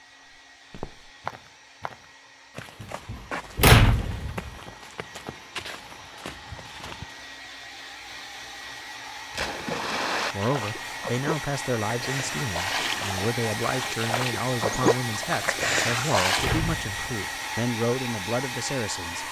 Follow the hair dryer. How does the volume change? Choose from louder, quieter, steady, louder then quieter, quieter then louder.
louder.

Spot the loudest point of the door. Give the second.
4 s.